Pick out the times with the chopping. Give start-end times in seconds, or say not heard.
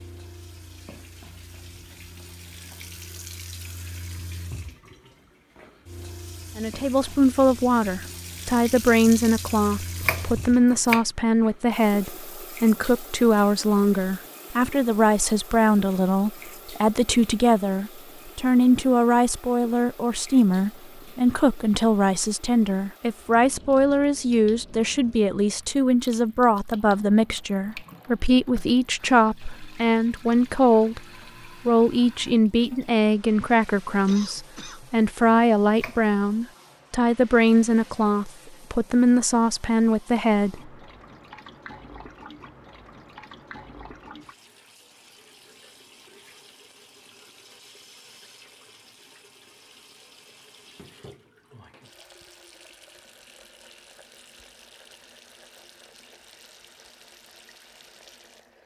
9.1-11.0, 34.8-36.0.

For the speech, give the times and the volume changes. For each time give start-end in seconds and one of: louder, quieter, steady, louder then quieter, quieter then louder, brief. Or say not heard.
6.5-31.0 steady
31.6-40.7 steady.